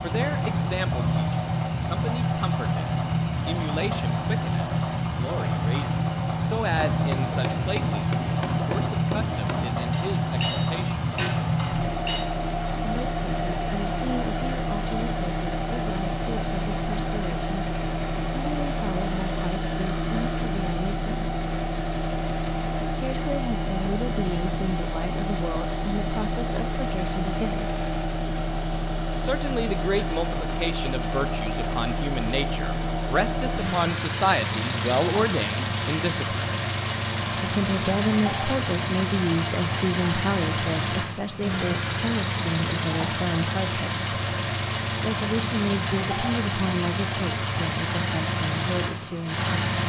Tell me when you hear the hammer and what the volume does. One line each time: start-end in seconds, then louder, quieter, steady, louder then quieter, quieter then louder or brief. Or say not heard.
6.7-12.2 steady.